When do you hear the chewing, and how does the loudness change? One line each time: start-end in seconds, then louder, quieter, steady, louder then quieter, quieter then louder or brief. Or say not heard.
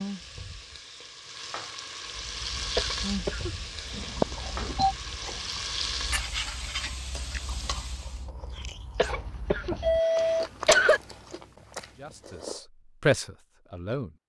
2.0-12.7 quieter then louder.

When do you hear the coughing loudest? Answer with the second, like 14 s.
11 s.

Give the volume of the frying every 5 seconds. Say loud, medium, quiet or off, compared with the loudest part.
loud, loud, off.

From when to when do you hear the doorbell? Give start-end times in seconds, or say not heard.
3.9-5.0, 9.8-10.4.